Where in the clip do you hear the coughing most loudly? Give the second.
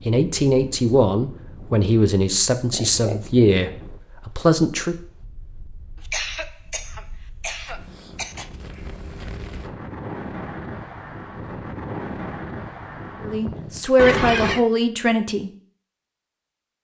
14 s.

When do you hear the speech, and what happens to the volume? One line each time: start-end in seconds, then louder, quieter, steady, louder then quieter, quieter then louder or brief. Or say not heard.
0.1-5.0 steady
13.2-15.5 brief.